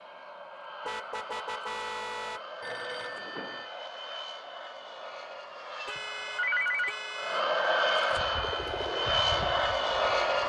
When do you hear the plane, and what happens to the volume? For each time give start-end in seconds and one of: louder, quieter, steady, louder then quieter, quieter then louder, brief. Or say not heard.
0.0-10.4 louder.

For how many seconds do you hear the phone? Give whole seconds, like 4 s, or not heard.
2 s.